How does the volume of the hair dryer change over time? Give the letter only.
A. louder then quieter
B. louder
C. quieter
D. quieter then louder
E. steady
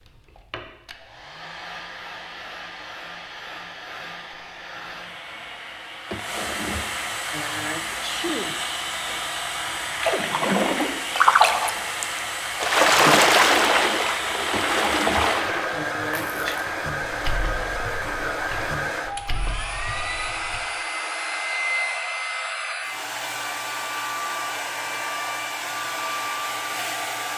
B.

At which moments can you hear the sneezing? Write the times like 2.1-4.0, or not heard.
6.1-8.6, 14.5-16.6.